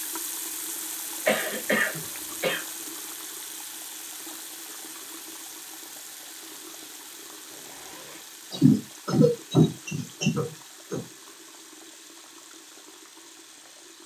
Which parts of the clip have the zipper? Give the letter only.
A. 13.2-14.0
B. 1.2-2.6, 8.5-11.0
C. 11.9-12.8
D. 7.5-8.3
D.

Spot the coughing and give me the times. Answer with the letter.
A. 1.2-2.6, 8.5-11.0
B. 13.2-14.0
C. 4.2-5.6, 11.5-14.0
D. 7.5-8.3
A.